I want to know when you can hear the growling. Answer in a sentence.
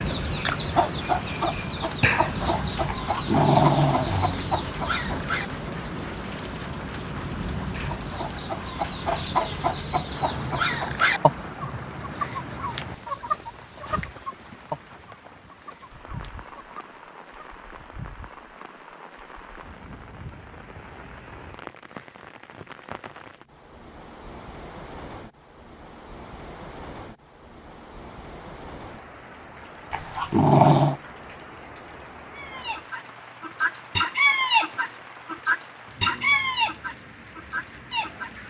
The growling can be heard from 3.0 to 4.7 s and from 29.9 to 31.0 s.